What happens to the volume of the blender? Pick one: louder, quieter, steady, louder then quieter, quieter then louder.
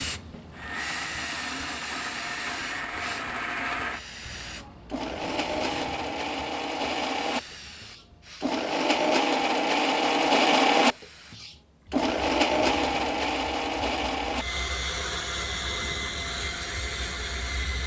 louder then quieter.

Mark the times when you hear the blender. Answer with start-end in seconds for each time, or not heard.
0.0-17.8.